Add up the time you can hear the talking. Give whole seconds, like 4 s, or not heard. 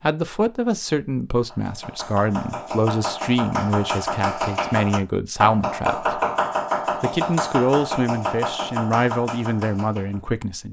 10 s.